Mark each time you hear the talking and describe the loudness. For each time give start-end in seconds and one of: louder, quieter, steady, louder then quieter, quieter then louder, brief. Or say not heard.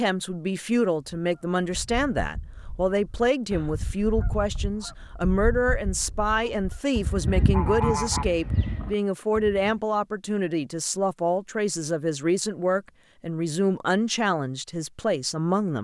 0.0-15.8 steady.